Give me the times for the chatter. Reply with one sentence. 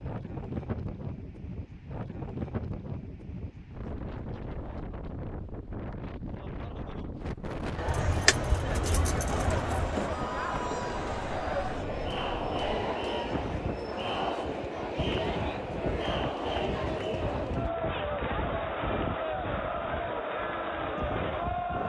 You can hear the chatter from 7.8 to 21.8 s.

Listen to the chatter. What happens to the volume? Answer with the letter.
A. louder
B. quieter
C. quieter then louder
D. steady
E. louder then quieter
D.